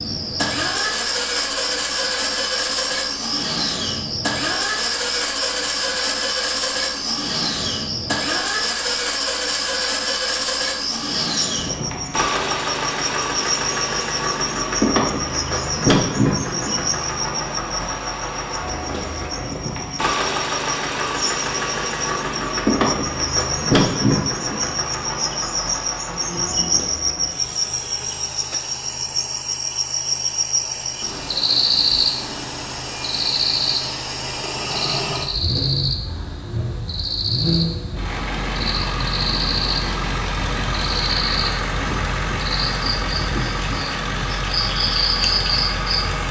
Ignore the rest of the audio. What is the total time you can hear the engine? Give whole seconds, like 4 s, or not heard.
46 s.